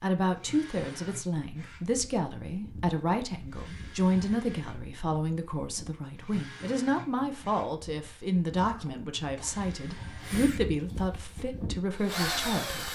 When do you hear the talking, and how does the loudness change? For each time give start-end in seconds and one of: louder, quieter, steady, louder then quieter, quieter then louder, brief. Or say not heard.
0.0-12.8 steady.